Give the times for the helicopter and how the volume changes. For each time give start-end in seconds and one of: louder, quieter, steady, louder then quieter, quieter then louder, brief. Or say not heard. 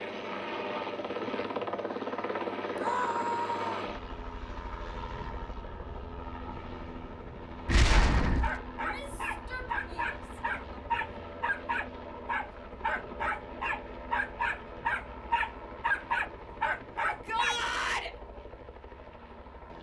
0.0-19.7 quieter.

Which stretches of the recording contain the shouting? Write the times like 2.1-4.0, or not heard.
2.8-3.9, 8.8-10.8, 17.1-18.1.